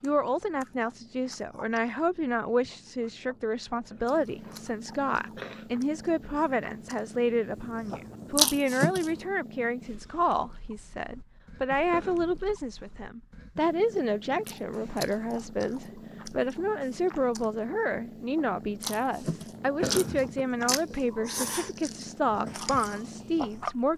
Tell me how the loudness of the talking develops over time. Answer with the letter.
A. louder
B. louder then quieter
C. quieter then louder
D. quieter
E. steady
E.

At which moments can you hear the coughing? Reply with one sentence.
The coughing can be heard from 3.9 to 5.7 s, from 11.9 to 12.6 s and from 19.8 to 20.4 s.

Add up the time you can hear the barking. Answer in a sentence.
The barking can't be heard in this clip.